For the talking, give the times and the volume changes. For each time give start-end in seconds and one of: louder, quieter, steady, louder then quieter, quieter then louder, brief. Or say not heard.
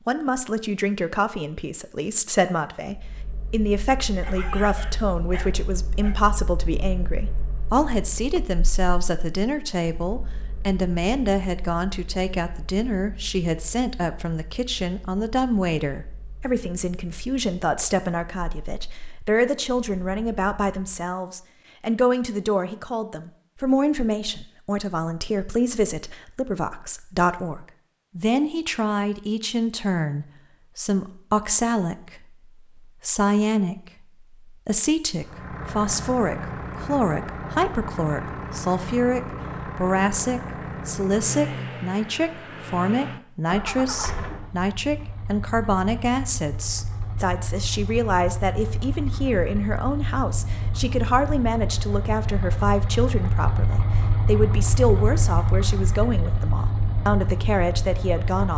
0.1-58.5 steady.